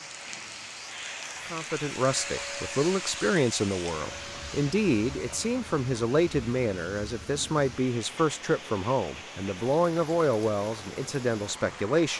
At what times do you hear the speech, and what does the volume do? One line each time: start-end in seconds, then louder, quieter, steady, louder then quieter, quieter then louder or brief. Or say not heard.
1.5-12.1 steady.